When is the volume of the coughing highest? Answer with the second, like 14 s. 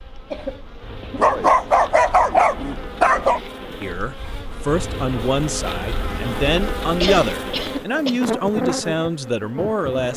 7 s.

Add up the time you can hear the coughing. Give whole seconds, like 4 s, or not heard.
2 s.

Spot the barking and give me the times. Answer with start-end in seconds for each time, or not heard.
1.1-3.4.